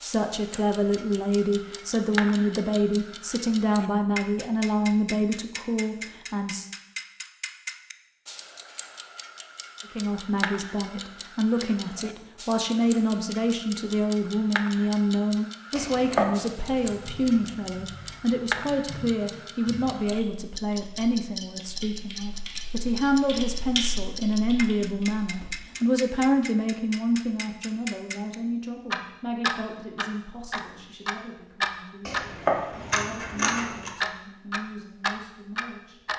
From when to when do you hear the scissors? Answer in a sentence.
You can hear the scissors from 15.8 to 16.4 s and from 32.0 to 33.9 s.